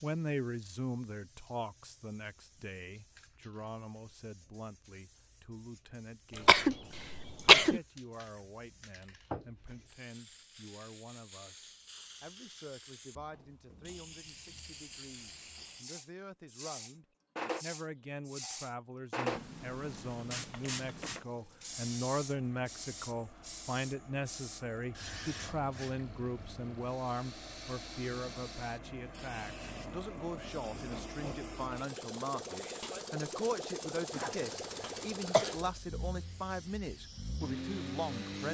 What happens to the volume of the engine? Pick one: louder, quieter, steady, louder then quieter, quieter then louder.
louder.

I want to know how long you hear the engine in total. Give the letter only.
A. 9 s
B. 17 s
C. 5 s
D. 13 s
B.